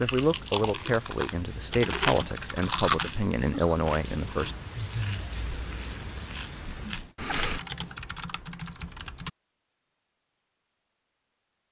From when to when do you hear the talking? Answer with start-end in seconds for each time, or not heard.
0.0-4.5.